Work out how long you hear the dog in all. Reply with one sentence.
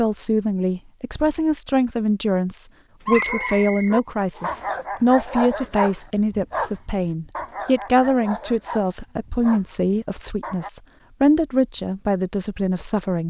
The dog can be heard for 8 seconds in total.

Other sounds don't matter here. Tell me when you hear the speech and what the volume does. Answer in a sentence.
The speech can be heard from 0.0 to 13.2 s, at a steady volume.